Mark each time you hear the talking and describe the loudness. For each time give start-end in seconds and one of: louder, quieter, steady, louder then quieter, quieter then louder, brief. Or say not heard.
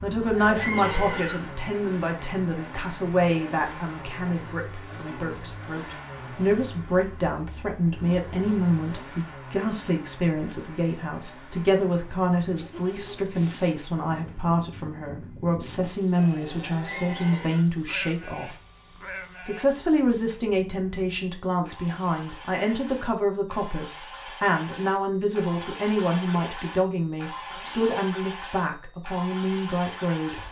0.0-18.6 steady
19.4-30.4 steady.